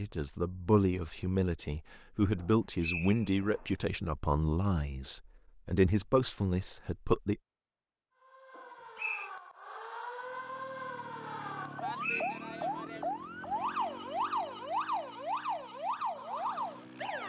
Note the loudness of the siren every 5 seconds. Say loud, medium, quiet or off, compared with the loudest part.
off, medium, loud, loud.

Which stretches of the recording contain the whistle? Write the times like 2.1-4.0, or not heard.
2.8-3.6, 8.6-9.3, 12.0-12.8.